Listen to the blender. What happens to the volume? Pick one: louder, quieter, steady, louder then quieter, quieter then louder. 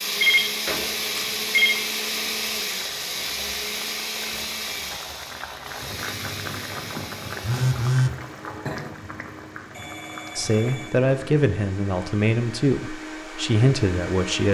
quieter then louder.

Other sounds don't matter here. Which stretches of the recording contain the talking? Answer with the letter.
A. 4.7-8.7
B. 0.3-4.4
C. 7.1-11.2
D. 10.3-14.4
D.